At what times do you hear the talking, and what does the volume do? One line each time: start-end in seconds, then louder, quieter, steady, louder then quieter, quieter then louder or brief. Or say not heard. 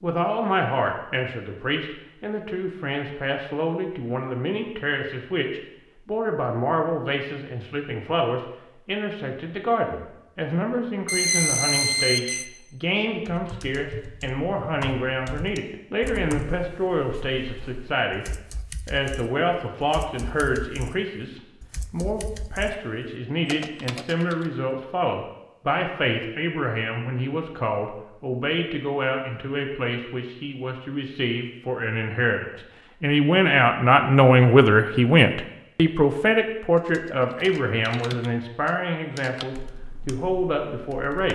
0.0-18.2 steady
18.9-41.3 louder then quieter.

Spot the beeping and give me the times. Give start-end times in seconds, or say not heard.
11.1-12.4.